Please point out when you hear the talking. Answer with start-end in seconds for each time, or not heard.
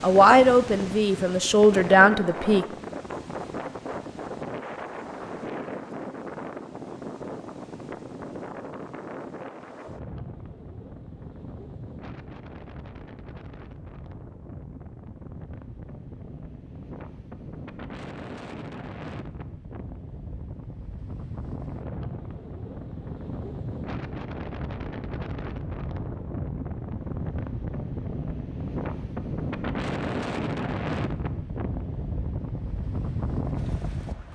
0.0-2.6.